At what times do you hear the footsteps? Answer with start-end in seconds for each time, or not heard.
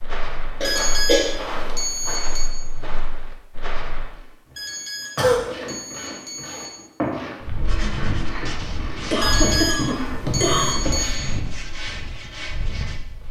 0.0-4.2, 7.4-13.2.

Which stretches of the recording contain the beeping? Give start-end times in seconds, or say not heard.
0.6-2.5, 4.5-6.7, 9.2-11.2.